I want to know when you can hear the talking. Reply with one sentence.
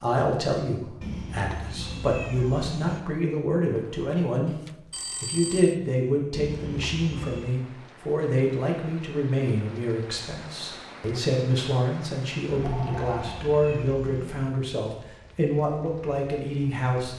The talking can be heard from 0.0 to 4.5 s and from 5.2 to 17.1 s.